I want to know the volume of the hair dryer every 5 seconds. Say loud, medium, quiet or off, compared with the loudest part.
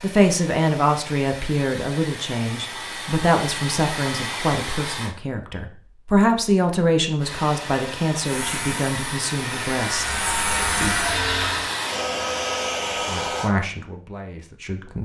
medium, medium, loud.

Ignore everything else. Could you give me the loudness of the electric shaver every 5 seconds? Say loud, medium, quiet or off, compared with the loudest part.
off, medium, loud.